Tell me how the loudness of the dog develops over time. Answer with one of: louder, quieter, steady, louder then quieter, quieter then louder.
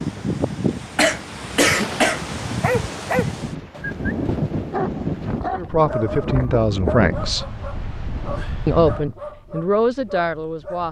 quieter.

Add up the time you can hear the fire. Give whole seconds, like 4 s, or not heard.
not heard.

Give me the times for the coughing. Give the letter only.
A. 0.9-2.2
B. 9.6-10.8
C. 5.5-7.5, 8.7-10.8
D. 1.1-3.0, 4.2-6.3
A.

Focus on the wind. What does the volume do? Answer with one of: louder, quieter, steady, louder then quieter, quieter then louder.
quieter.